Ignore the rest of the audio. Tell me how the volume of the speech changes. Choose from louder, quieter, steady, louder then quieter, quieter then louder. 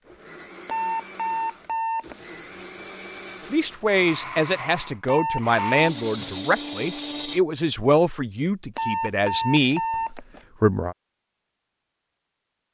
steady.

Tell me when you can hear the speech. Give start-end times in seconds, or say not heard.
3.5-10.9.